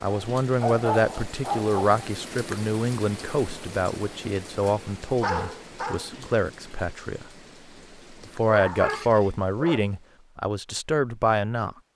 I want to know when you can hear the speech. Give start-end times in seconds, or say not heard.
0.0-7.2, 8.1-11.8.